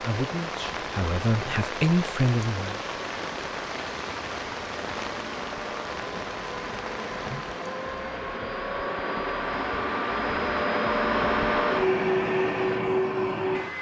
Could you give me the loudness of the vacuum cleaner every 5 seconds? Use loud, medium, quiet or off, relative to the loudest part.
quiet, medium, loud.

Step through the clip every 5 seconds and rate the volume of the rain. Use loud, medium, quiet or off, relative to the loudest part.
loud, loud, off.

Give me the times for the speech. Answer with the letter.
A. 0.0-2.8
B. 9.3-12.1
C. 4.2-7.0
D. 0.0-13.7
A.